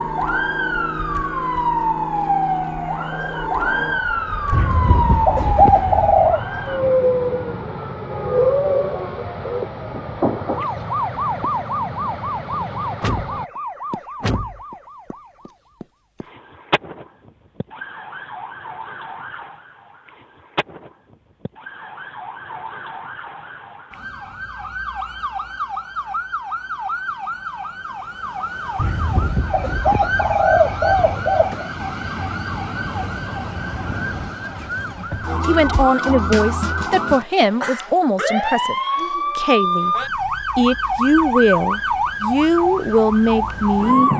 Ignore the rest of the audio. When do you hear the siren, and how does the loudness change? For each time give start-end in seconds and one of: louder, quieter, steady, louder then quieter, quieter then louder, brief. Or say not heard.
0.0-44.1 quieter then louder.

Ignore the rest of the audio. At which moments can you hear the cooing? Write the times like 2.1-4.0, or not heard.
4.5-6.4, 28.8-31.7.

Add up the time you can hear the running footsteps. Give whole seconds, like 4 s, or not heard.
not heard.